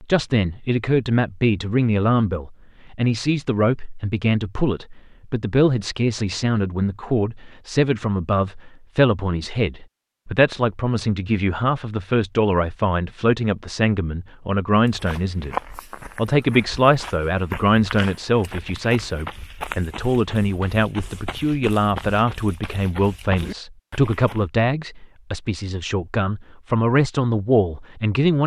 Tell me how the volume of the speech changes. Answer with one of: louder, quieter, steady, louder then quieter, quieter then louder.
steady.